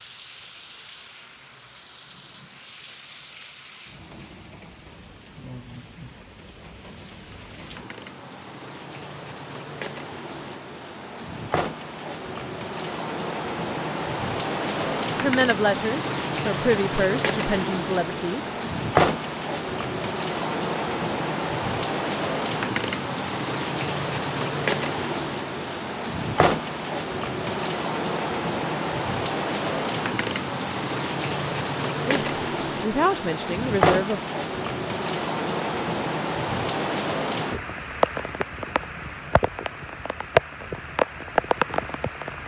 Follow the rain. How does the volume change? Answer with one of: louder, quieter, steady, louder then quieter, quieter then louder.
louder.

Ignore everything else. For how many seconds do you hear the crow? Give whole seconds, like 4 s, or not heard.
not heard.